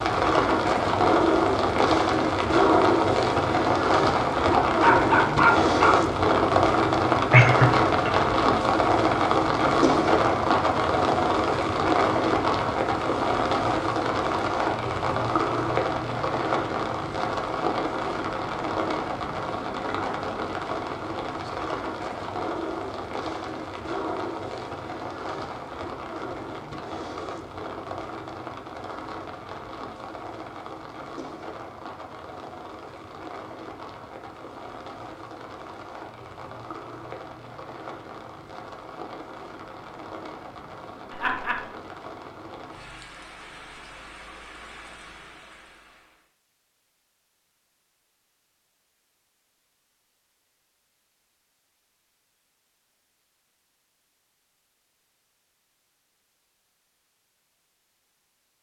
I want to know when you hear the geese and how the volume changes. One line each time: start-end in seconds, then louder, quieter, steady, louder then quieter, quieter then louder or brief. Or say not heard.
not heard.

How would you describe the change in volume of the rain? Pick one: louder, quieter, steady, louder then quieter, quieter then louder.
quieter.